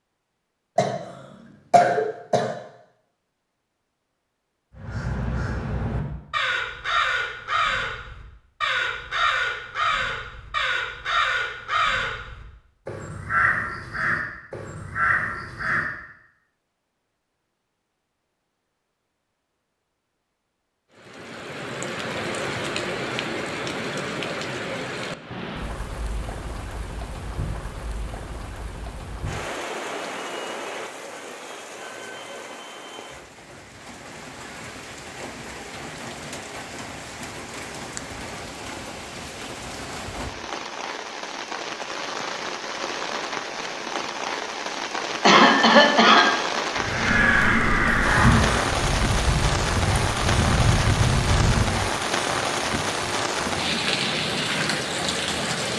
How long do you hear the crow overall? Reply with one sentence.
You can hear the crow for 16 seconds altogether.